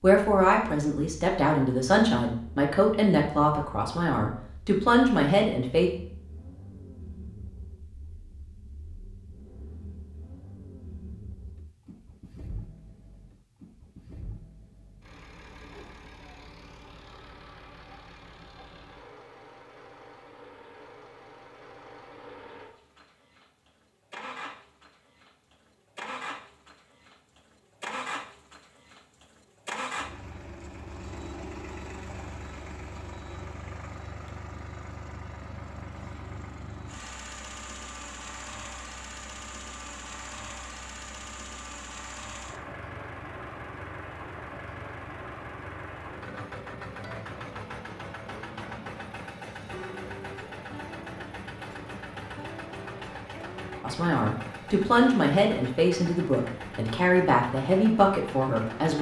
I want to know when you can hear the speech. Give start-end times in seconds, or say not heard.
0.0-5.9, 53.8-58.9.